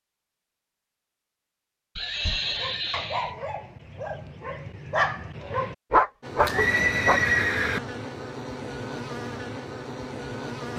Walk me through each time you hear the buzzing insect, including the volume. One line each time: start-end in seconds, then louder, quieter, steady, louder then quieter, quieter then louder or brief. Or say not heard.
6.2-10.7 steady.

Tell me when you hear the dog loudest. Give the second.
6 s.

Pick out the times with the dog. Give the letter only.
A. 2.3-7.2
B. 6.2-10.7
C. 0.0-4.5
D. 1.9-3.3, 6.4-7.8
A.